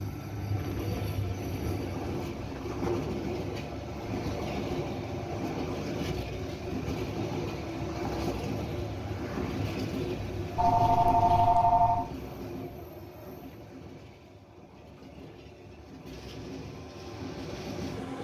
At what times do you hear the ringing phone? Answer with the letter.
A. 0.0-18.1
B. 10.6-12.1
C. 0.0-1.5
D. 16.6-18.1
B.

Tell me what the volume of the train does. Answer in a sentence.
The volume of the train goes down.